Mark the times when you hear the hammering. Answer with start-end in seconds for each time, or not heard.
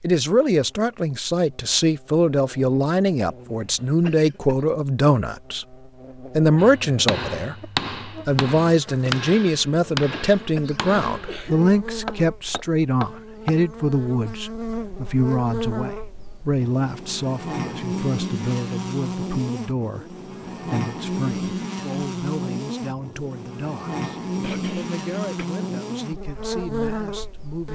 6.5-13.6.